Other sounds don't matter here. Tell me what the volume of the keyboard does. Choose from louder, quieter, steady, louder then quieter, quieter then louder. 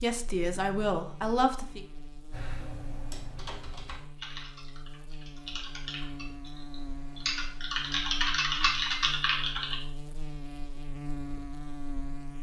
louder.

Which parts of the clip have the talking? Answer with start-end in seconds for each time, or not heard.
0.0-1.9.